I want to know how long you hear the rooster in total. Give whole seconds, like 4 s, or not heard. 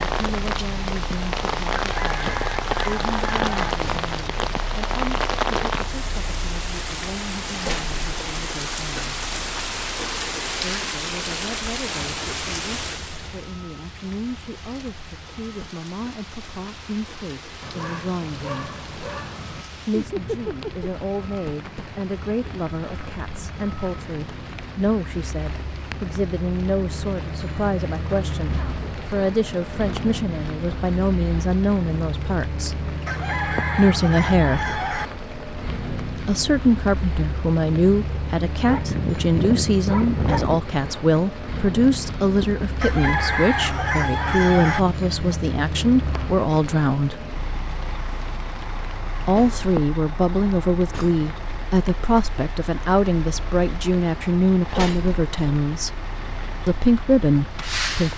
6 s.